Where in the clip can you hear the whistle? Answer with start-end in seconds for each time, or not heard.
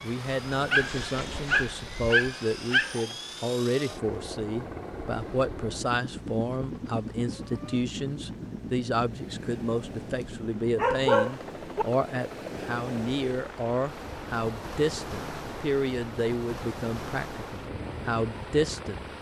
not heard.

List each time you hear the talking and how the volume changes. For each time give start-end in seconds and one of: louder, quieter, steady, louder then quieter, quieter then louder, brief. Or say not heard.
0.0-19.1 steady.